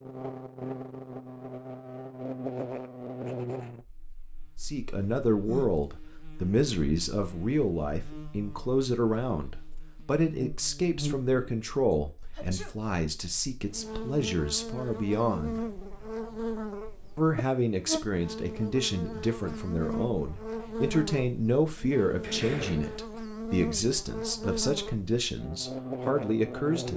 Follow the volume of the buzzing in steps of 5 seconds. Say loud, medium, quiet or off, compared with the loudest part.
loud, quiet, loud, loud, loud, loud.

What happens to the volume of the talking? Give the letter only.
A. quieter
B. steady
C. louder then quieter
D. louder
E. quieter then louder
B.